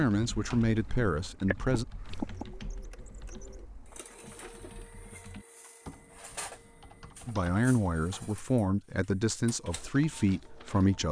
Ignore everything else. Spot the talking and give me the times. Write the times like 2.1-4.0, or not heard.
0.0-1.9, 7.2-11.0.